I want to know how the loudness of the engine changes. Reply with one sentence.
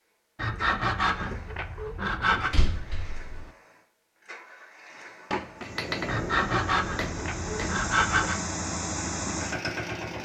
The volume of the engine goes up.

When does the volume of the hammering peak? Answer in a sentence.
The loudest moment of the hammering is at 6 seconds.